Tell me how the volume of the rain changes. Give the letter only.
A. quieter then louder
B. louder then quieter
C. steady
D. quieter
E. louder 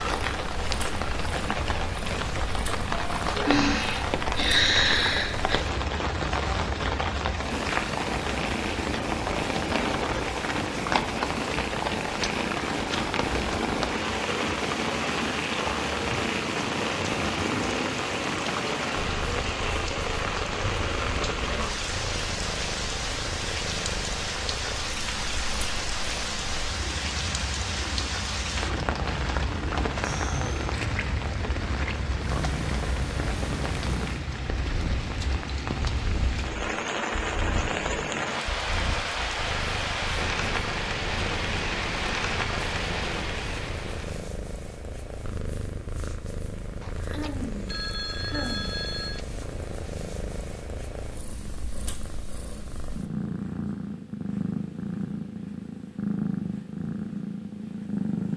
C.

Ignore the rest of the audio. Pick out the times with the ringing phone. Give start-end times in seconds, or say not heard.
46.8-49.2.